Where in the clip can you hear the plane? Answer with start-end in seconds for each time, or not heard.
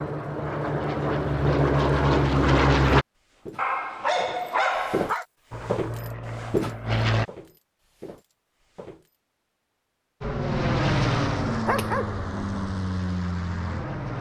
0.0-3.0, 5.5-7.2, 10.2-14.1.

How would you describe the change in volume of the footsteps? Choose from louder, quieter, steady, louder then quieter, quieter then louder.
louder then quieter.